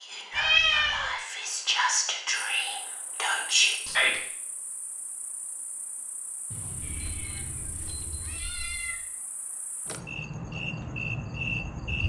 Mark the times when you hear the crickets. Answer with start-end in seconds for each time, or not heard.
2.5-12.0.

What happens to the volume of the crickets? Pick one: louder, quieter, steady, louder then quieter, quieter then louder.
louder.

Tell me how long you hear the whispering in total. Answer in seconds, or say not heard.
4 s.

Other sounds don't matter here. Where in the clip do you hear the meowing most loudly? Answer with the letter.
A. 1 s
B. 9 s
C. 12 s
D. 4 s
A.